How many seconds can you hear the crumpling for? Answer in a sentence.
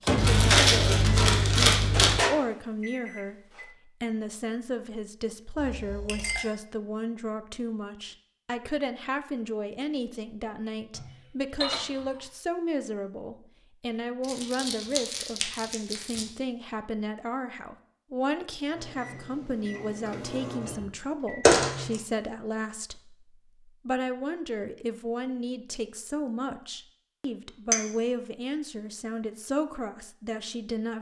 You can hear the crumpling for 5 seconds altogether.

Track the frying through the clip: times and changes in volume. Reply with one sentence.
The frying can't be heard in this clip.